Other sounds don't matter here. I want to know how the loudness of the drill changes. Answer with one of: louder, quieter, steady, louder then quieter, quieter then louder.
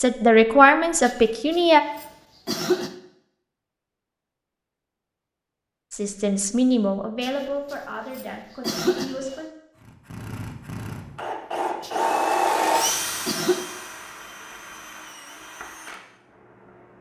louder then quieter.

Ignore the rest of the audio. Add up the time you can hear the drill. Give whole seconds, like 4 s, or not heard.
7 s.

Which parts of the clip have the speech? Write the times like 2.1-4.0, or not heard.
0.0-1.8, 5.9-9.5.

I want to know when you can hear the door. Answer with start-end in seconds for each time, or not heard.
not heard.